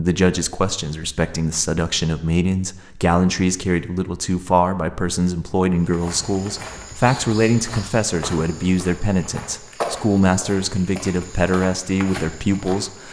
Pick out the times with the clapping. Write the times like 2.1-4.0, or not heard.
not heard.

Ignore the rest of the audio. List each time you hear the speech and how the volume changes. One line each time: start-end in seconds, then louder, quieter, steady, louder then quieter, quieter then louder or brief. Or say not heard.
0.0-13.0 steady.